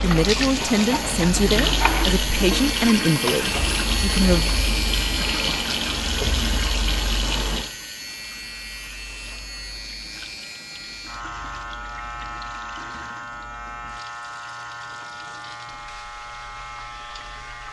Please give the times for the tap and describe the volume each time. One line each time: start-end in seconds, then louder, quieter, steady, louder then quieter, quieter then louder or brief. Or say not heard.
0.0-17.6 quieter.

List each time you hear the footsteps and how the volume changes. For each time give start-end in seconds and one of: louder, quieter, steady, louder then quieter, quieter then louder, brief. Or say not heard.
not heard.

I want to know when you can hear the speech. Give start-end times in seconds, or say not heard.
0.0-4.5.